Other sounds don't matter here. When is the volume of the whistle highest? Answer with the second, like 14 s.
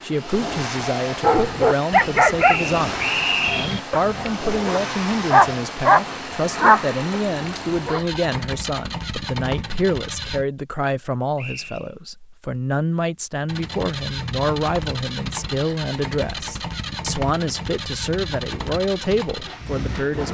3 s.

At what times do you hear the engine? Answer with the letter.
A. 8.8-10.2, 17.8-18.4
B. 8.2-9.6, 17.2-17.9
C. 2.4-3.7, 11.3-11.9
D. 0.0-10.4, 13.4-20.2
D.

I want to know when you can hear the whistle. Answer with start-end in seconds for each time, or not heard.
2.4-3.7, 11.3-11.9.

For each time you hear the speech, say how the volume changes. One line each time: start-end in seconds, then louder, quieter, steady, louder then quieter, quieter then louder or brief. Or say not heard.
0.0-20.2 steady.